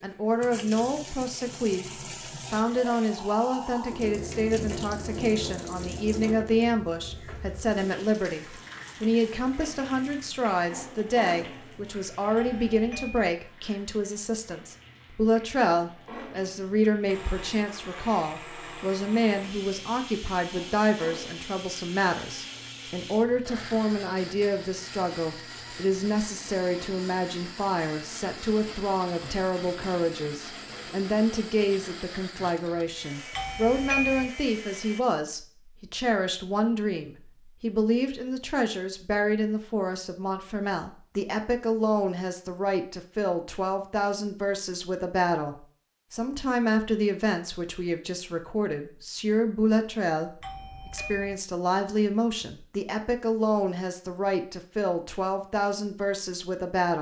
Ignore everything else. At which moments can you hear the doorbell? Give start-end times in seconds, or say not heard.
12.3-13.3, 33.4-34.3, 50.4-51.4.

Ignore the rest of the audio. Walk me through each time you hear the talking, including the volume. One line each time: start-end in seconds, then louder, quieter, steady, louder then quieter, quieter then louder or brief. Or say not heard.
0.0-56.9 steady.